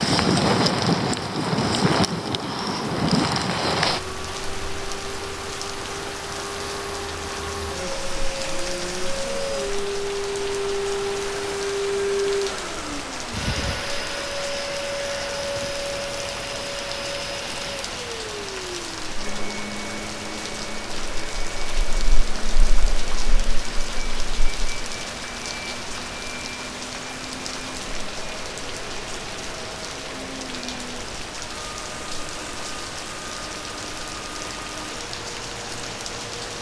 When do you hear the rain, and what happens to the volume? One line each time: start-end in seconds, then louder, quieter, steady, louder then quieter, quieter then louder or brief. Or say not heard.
0.0-36.5 quieter.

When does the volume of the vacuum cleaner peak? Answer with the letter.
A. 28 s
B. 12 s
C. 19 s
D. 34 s
B.